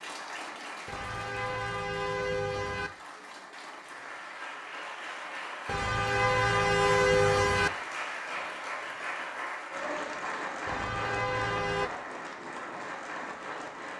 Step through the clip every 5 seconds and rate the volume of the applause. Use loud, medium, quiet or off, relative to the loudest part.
medium, loud, loud.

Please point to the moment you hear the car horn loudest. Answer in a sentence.
The loudest moment of the car horn is at 7 seconds.